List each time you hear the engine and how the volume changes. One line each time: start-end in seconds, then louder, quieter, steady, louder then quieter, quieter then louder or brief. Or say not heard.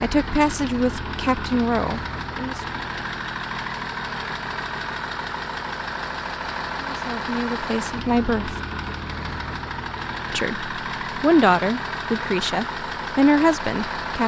0.0-14.2 steady.